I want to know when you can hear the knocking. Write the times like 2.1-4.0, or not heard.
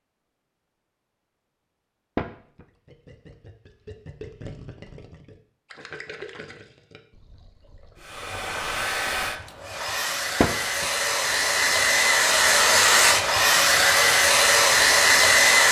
2.1-2.6, 10.4-10.8.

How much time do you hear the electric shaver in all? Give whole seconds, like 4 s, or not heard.
not heard.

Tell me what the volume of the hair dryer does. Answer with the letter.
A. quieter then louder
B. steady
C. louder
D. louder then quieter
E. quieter
C.